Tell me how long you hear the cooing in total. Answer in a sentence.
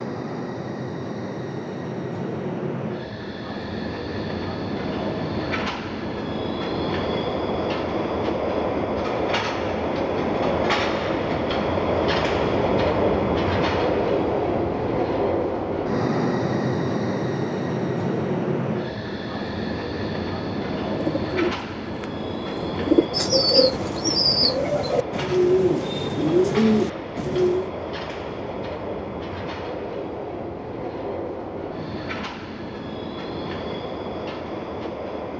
You can hear the cooing for 7 seconds altogether.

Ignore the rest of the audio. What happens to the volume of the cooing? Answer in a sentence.
The volume of the cooing goes up.